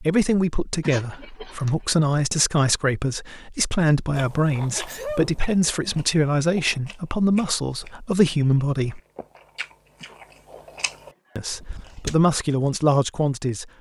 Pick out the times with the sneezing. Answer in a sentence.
You can hear the sneezing from 0.8 to 1.8 s, from 4.7 to 5.3 s and from 10.0 to 11.7 s.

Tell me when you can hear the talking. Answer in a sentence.
You can hear the talking from 0.0 to 9.0 s and from 11.3 to 13.7 s.